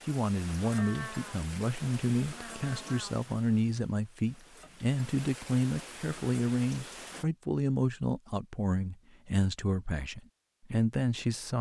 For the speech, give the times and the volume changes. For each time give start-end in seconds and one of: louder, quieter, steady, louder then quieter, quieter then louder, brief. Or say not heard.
0.1-11.5 steady.